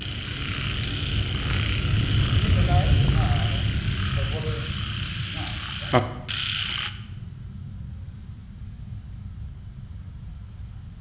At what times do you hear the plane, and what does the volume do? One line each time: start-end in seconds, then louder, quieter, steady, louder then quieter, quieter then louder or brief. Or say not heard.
0.0-10.9 quieter.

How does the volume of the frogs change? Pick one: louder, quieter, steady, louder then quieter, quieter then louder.
louder.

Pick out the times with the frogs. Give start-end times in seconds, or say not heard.
0.0-6.9.